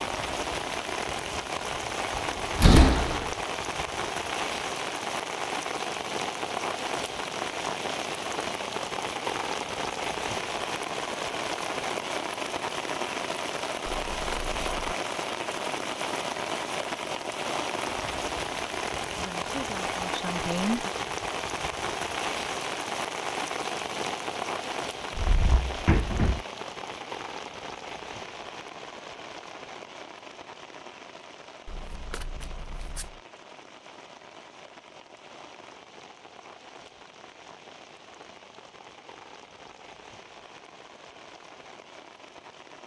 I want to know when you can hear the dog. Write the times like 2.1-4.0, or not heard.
not heard.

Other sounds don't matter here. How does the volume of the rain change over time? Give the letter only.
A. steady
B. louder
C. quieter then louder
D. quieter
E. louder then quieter
D.